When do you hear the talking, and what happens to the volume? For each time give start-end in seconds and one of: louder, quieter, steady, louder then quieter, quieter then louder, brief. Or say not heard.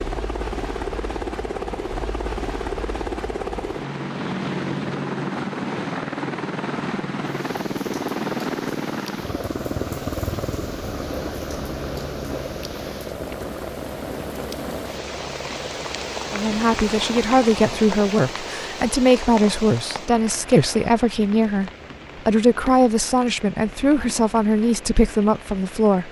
16.3-26.0 steady.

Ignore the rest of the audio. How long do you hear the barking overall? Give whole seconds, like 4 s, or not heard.
not heard.